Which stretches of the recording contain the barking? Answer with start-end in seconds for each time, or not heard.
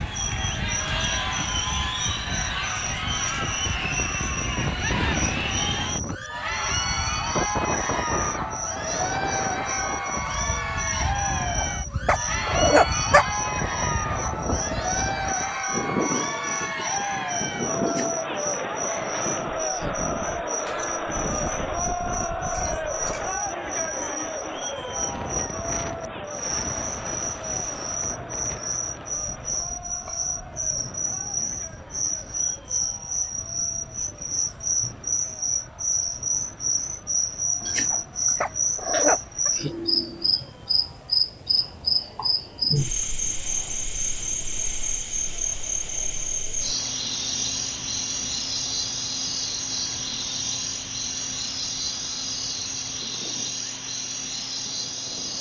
11.3-13.2, 37.6-39.5.